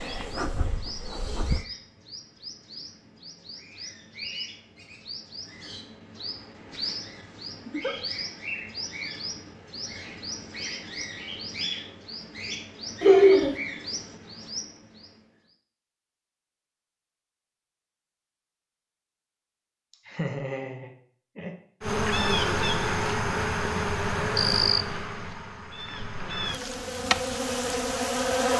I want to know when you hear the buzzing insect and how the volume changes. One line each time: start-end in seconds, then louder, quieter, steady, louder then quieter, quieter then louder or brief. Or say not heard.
0.0-1.6 brief
21.8-28.5 quieter then louder.